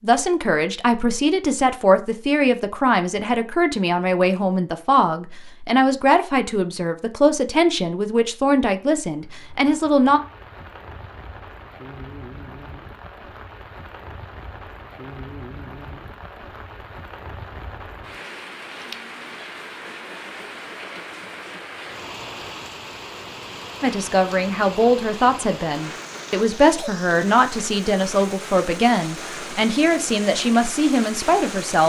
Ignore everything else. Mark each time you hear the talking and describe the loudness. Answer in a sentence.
You can hear the talking from 0.0 to 10.2 s, at a steady volume; and from 23.8 to 31.8 s, at a steady volume.